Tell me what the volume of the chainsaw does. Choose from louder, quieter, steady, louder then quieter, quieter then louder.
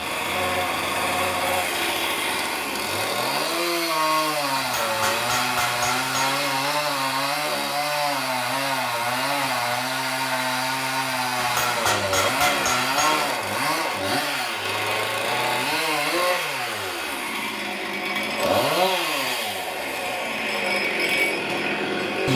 steady.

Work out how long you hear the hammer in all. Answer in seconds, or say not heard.
4 s.